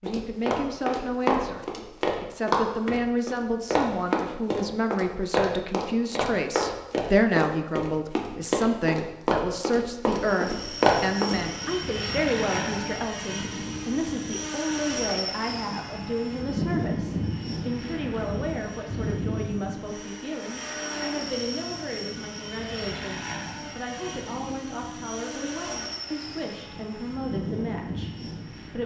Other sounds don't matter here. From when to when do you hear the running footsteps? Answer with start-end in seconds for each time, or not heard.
0.1-11.4.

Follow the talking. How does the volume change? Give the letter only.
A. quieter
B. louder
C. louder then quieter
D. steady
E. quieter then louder
A.